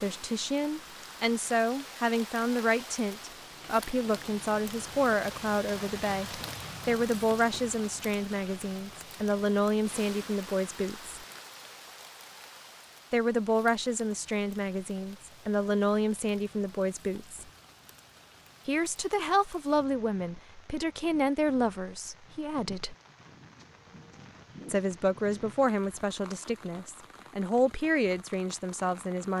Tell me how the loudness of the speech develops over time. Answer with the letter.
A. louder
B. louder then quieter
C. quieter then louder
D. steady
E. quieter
D.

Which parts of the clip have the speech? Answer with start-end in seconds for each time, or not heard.
0.0-11.2, 13.1-17.4, 18.6-22.9, 24.6-29.3.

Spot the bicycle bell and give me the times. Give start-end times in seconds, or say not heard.
not heard.